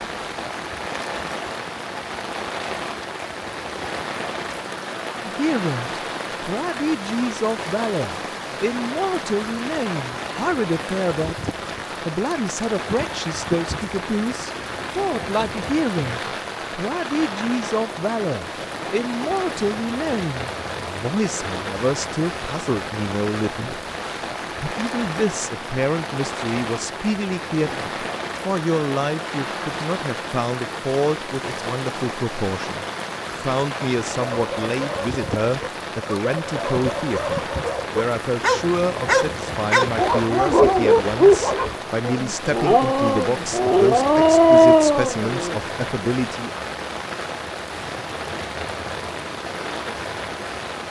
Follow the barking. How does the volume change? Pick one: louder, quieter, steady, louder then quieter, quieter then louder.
louder.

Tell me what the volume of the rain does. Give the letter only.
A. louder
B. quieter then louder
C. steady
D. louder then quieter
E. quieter
C.